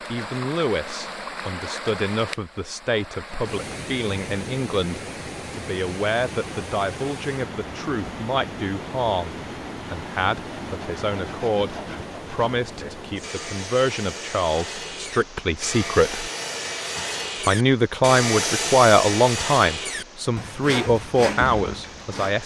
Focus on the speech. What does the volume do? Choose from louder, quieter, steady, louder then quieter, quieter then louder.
louder.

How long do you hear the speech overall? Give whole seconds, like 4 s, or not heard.
21 s.